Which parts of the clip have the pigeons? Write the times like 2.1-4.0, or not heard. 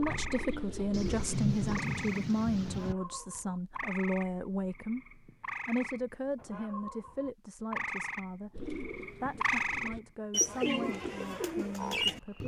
0.0-1.8, 8.5-12.4.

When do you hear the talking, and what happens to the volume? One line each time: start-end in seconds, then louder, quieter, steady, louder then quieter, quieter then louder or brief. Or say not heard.
0.0-12.4 quieter.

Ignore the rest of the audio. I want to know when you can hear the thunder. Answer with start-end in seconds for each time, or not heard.
0.9-3.0.